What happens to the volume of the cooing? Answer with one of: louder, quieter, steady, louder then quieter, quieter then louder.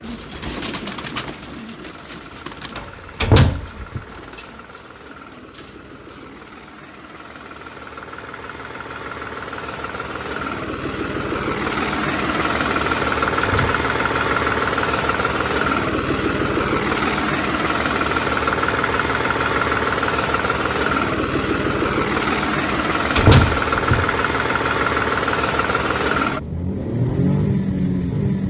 quieter.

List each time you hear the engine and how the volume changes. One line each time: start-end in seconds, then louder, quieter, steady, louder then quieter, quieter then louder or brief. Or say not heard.
0.0-28.4 louder.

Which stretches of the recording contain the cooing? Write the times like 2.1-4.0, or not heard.
0.0-6.5.